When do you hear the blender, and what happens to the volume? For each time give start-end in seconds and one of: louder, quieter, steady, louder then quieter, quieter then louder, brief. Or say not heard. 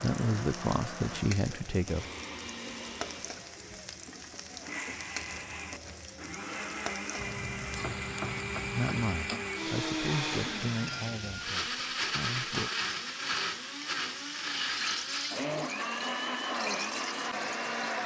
0.0-18.0 louder.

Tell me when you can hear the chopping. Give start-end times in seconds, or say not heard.
7.2-8.9.